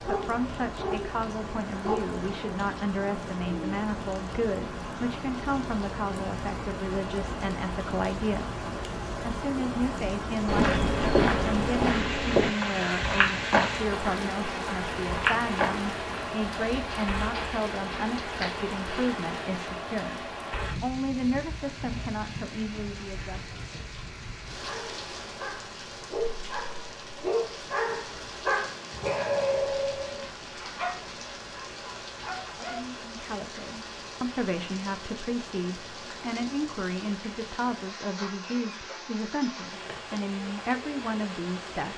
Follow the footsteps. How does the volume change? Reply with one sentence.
The loudness of the footsteps goes down.